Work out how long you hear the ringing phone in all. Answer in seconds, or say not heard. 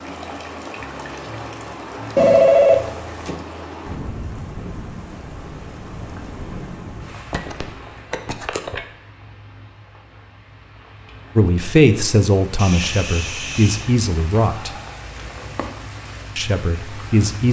4 s.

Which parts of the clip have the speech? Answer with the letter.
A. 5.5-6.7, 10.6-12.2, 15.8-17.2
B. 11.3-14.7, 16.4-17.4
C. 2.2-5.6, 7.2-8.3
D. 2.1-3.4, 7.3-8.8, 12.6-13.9
B.